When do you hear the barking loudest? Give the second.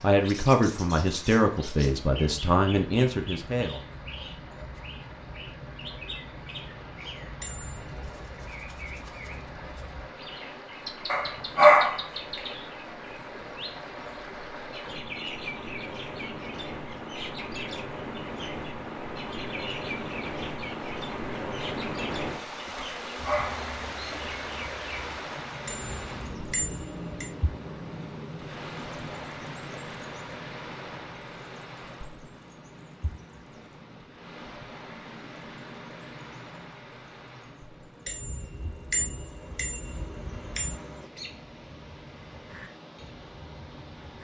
12 s.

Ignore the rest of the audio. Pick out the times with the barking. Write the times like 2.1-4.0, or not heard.
11.1-12.0, 22.8-23.6.